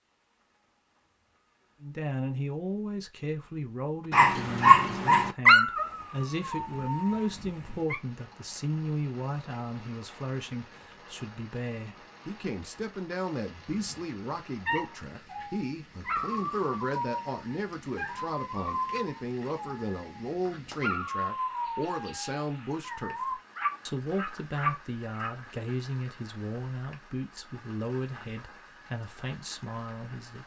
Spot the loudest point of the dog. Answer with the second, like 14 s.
5 s.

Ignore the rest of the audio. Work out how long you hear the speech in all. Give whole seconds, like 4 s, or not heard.
28 s.